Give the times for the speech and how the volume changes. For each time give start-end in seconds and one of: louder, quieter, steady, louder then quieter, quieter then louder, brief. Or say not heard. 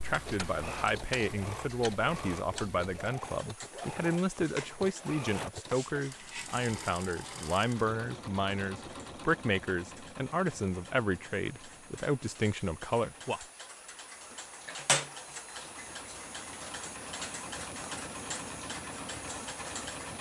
0.0-13.4 steady.